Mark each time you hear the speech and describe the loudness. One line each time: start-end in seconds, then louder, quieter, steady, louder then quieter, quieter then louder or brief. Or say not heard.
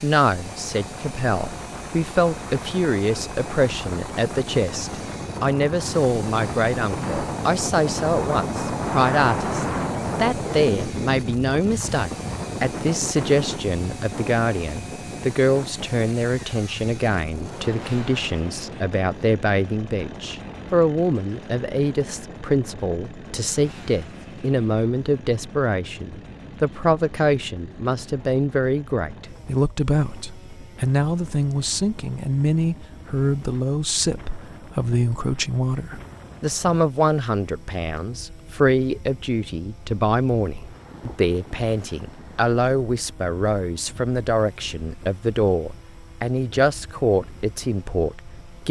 0.0-48.6 steady.